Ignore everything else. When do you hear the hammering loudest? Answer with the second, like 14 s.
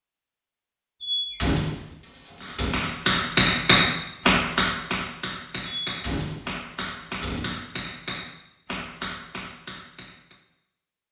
4 s.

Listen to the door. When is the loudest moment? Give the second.
2 s.